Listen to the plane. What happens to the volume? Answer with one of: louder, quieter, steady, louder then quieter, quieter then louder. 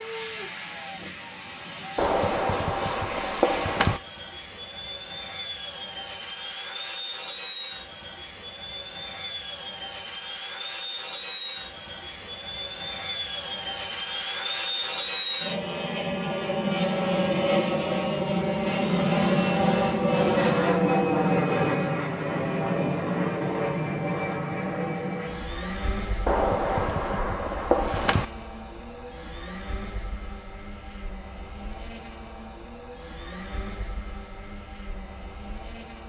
louder then quieter.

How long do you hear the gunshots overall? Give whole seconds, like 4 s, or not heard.
4 s.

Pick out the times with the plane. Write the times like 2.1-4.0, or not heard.
0.0-36.0.